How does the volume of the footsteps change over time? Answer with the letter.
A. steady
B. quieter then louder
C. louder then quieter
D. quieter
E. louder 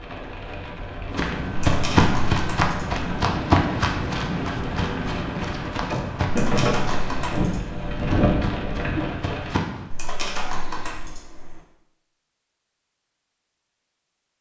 D.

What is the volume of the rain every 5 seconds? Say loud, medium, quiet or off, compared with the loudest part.
medium, loud, off.